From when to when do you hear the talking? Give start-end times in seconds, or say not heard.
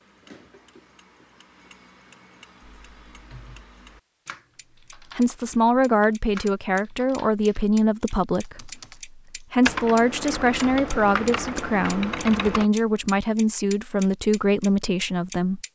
5.2-15.6.